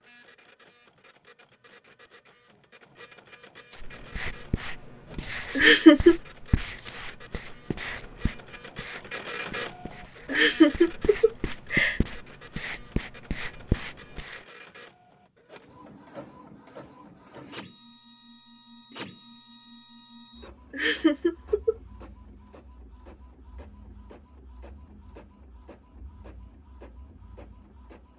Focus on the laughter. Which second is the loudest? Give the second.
6 s.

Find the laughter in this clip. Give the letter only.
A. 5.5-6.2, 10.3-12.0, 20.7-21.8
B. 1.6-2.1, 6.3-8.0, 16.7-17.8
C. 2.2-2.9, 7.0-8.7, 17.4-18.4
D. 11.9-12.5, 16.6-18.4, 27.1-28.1
A.